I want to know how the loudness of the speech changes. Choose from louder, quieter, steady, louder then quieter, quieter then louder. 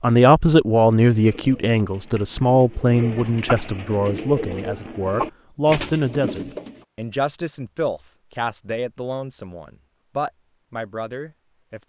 quieter.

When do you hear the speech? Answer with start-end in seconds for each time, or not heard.
0.0-11.8.